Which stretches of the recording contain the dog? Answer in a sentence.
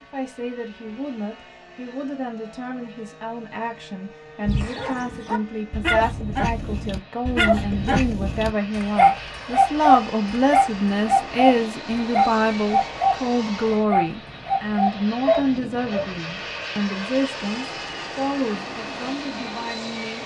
The dog can be heard from 4.5 to 16.1 s.